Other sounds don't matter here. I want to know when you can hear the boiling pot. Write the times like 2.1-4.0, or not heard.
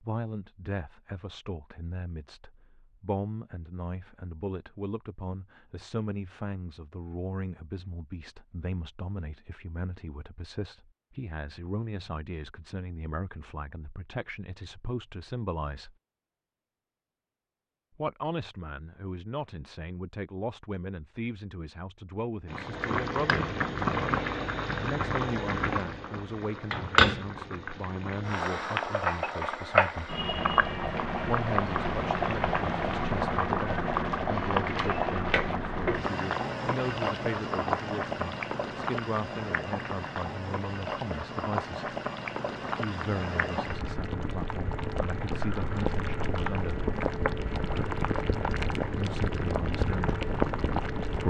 22.4-51.2.